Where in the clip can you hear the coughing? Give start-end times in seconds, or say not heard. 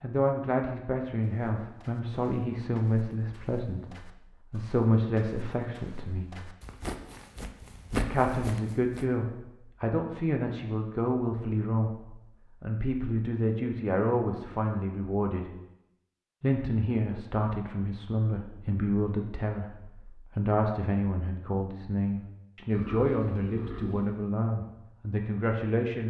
not heard.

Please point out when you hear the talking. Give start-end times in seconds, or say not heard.
0.0-6.3, 7.9-15.5, 16.4-26.0.